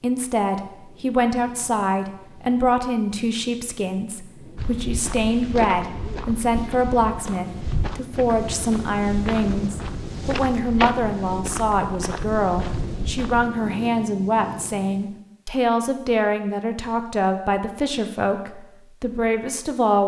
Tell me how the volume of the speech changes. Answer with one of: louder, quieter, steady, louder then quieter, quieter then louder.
steady.